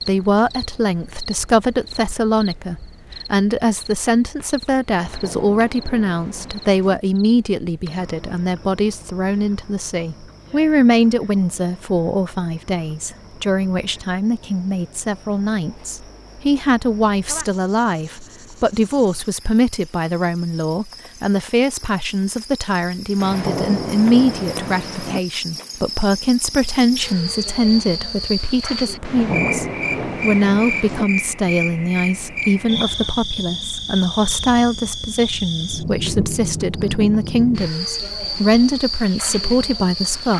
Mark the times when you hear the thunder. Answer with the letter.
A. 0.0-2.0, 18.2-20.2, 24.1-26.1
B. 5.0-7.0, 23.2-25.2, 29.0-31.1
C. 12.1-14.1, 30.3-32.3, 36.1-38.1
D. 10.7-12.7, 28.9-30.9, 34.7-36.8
B.